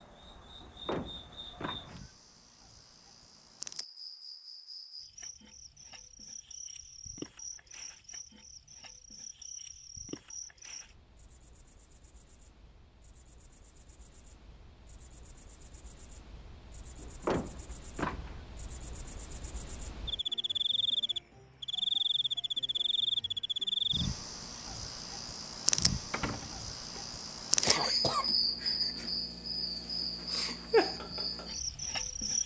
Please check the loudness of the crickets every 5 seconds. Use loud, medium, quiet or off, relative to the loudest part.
quiet, quiet, quiet, quiet, loud, loud, loud.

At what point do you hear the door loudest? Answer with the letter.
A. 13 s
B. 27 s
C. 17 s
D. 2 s
C.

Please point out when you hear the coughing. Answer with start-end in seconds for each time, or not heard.
27.6-29.1.